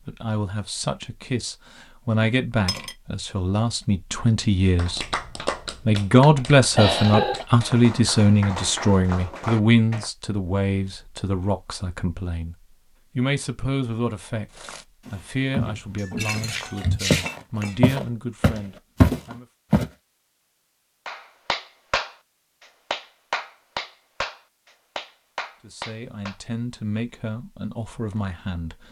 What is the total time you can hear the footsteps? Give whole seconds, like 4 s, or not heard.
5 s.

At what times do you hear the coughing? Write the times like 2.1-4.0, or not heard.
6.8-7.5.